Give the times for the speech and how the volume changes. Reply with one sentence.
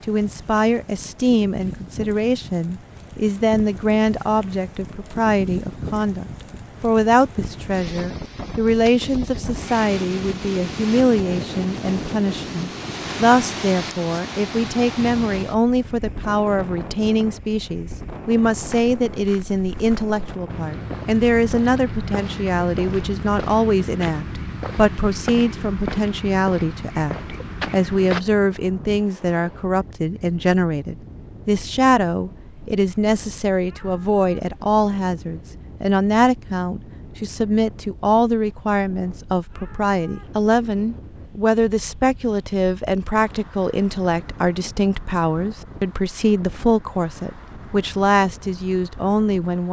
The speech can be heard from 0.1 to 49.6 s, at a steady volume.